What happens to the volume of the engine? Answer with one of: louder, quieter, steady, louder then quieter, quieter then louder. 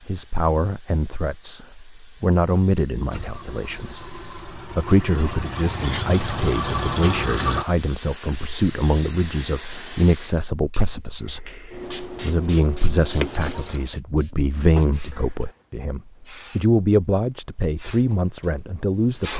louder.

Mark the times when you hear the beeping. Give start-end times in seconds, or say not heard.
13.2-13.9.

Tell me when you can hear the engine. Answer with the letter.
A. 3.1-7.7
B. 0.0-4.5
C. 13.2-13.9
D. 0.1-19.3
A.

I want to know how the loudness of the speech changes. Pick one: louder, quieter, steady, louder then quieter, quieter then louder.
steady.